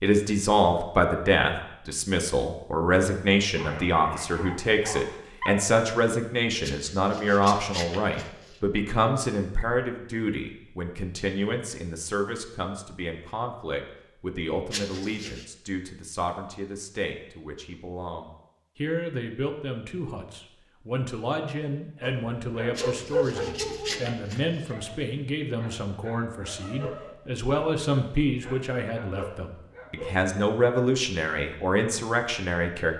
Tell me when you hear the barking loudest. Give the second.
23 s.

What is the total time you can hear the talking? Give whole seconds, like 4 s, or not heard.
33 s.